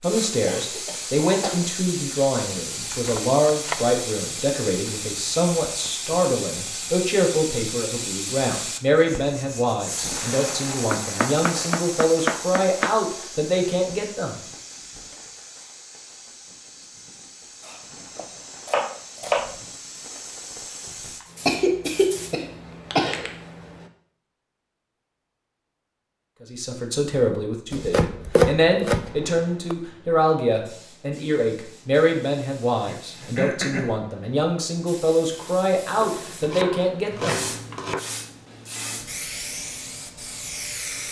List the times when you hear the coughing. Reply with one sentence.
The coughing can be heard from 0.5 to 1.6 s, from 21.4 to 23.3 s and from 32.8 to 34.0 s.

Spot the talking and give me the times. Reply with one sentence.
The talking can be heard from 0.0 to 14.4 s and from 26.4 to 37.5 s.